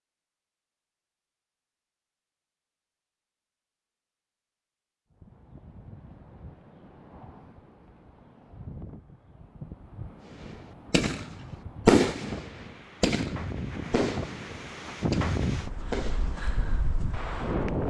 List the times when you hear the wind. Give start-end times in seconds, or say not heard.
5.1-17.8.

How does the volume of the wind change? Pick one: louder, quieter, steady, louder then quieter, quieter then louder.
louder.